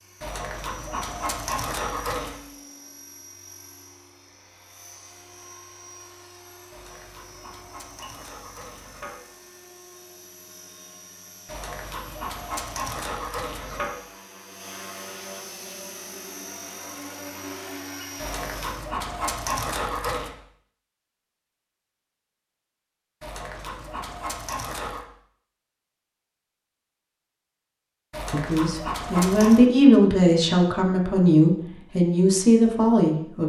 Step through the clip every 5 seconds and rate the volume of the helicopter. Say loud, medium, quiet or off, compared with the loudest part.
medium, medium, medium, loud, off, off, off.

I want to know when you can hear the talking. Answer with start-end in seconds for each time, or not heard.
28.3-33.4.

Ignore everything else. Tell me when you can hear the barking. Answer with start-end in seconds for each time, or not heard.
0.2-2.4, 6.7-9.2, 11.4-13.9, 18.1-20.4, 23.2-25.1, 28.1-29.6.